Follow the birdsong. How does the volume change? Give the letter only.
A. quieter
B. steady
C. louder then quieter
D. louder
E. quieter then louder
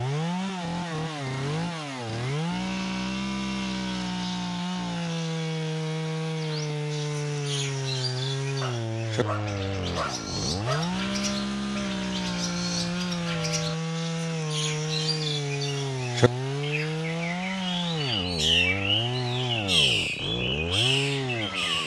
D.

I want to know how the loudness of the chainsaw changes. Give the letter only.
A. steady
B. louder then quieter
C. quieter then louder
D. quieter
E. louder
A.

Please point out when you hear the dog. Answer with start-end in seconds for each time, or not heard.
8.6-10.9.